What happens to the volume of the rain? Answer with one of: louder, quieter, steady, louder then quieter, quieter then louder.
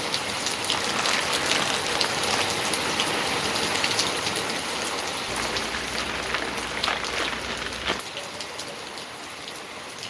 quieter.